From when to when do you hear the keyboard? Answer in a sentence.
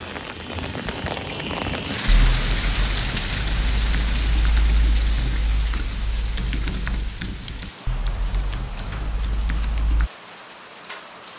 The keyboard can be heard from 2.0 to 10.1 s.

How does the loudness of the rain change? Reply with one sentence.
The volume of the rain goes down.